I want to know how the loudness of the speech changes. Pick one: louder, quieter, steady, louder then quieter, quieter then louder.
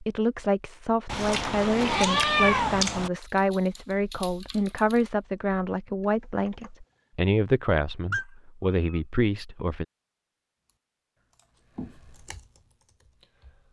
steady.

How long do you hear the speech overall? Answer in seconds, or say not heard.
10 s.